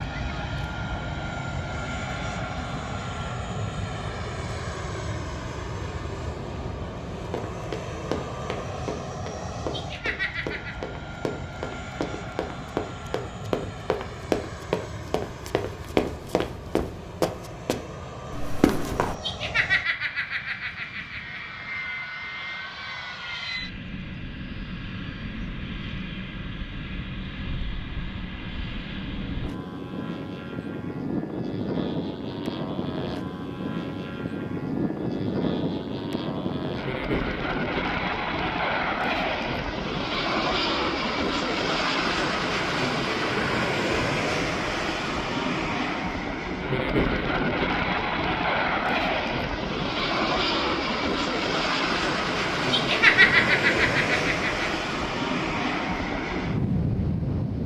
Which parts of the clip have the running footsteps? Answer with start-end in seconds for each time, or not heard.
7.3-19.1.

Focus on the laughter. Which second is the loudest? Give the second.
53 s.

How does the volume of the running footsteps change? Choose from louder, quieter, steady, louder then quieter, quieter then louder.
louder.